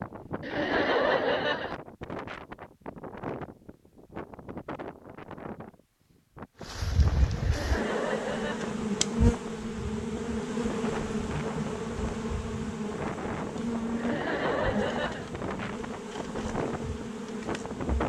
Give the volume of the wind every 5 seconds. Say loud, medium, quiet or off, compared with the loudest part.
loud, medium, loud, loud.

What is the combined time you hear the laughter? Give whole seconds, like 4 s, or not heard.
4 s.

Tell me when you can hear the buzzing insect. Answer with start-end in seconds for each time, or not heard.
6.6-18.0.